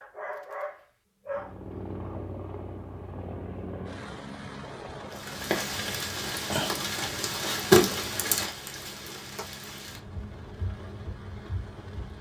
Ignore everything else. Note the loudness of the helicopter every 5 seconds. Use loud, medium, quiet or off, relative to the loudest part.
loud, medium, medium.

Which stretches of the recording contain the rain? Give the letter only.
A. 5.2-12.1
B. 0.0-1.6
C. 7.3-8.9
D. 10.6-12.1
A.